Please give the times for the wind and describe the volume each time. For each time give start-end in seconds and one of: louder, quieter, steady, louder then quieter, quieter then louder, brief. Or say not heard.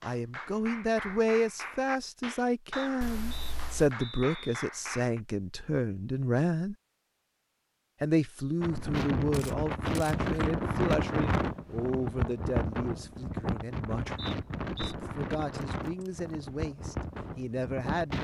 8.6-18.1 quieter.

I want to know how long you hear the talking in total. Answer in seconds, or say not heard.
17 s.